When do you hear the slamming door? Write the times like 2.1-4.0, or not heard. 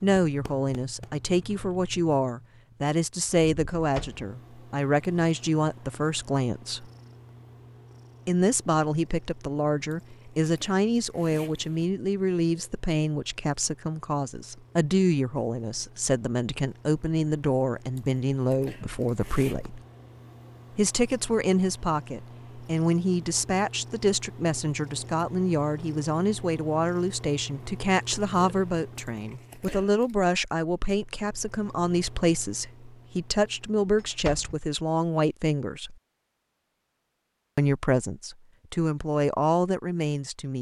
3.7-4.2, 34.0-34.6.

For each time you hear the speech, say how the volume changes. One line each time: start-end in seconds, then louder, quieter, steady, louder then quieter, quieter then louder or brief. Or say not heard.
0.0-6.8 steady
8.2-19.8 steady
20.8-36.0 steady
37.5-40.5 brief.